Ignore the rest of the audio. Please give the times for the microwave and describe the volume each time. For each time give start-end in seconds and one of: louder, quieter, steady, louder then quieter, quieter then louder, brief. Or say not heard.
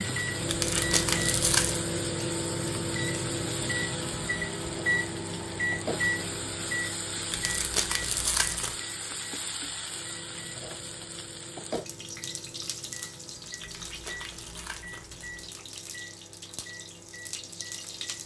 0.0-18.2 quieter.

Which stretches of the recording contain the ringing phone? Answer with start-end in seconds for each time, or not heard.
not heard.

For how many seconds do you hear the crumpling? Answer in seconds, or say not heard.
5 s.